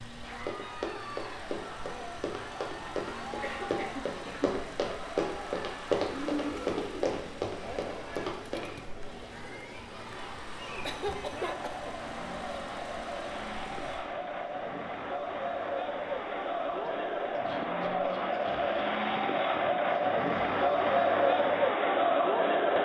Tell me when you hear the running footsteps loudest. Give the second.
6 s.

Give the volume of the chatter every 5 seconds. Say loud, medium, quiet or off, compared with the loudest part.
quiet, quiet, quiet, medium, loud.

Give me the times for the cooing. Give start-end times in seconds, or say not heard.
6.0-7.2.